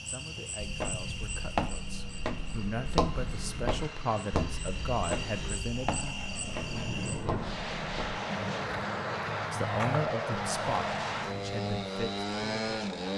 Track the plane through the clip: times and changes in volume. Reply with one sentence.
You can hear the plane from 0.0 to 13.1 s, getting louder.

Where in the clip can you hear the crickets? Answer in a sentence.
The crickets can be heard from 0.0 to 7.3 s.